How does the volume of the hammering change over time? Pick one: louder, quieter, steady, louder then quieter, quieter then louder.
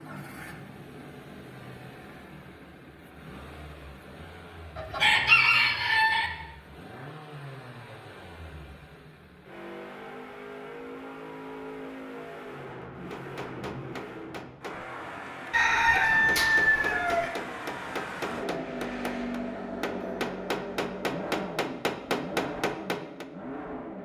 louder.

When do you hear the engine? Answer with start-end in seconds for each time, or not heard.
0.0-24.0.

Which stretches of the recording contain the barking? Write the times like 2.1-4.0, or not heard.
not heard.